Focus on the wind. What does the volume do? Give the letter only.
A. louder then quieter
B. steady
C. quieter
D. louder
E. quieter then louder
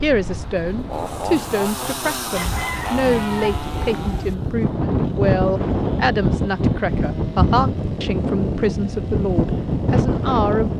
D.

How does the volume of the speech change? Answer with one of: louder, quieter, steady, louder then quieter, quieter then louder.
steady.